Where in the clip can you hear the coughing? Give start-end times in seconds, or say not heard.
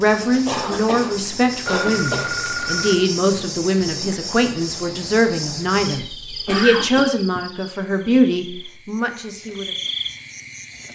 0.5-2.5, 6.1-7.1.